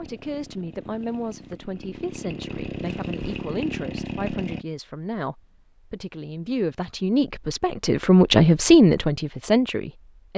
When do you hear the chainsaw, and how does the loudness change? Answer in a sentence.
You can hear the chainsaw from 0.0 to 4.7 s, getting louder.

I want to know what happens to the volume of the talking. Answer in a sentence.
The volume of the talking goes up.